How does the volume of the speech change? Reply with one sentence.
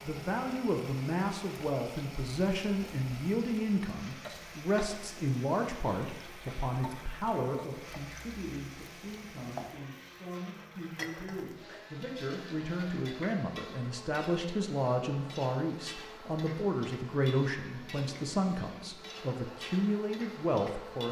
The volume of the speech goes down, then up.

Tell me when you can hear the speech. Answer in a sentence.
You can hear the speech from 0.0 to 21.0 s.